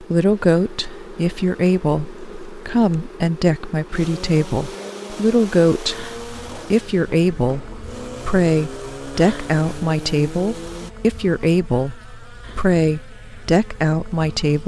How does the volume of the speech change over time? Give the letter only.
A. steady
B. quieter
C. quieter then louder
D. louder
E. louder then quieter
A.